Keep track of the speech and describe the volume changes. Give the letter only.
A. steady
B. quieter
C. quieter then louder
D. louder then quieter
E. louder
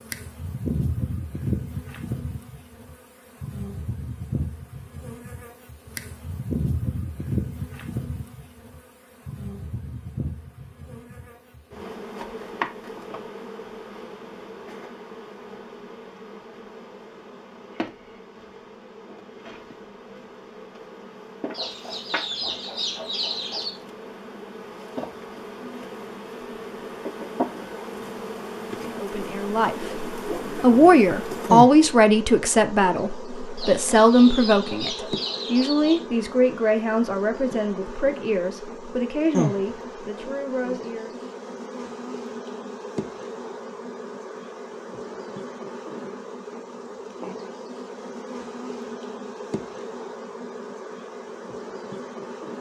B.